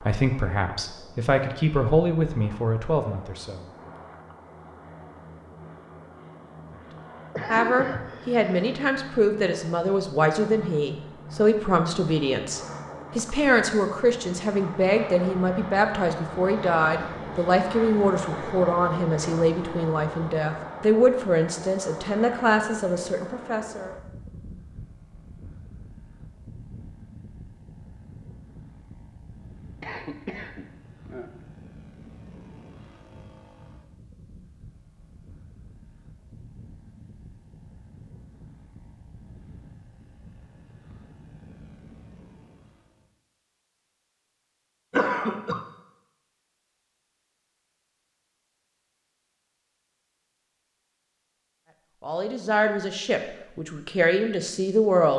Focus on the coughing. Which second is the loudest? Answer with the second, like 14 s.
45 s.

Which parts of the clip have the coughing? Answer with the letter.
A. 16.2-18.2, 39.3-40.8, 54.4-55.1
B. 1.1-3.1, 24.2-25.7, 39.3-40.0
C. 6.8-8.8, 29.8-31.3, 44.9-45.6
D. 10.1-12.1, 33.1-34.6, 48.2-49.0
C.